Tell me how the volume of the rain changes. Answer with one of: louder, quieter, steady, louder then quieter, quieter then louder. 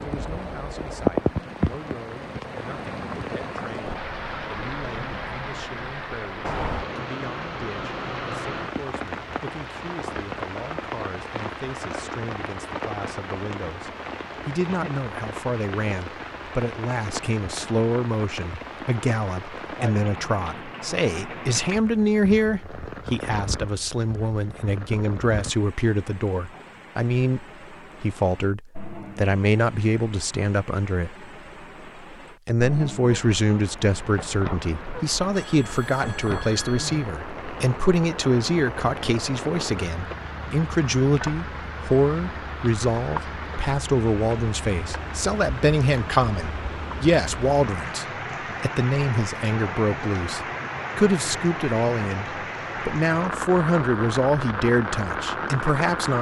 quieter then louder.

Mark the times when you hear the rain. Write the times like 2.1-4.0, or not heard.
0.0-56.1.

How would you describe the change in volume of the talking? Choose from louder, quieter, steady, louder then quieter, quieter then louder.
louder.